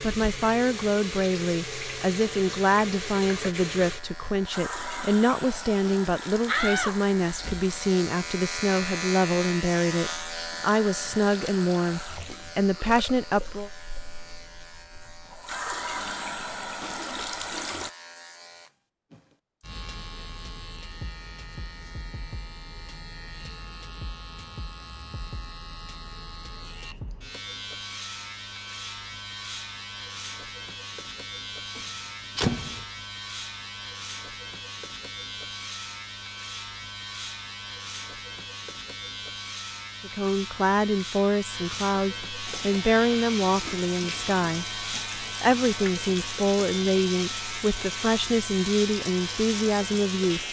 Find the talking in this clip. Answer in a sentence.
You can hear the talking from 0.0 to 13.7 s and from 40.0 to 50.4 s.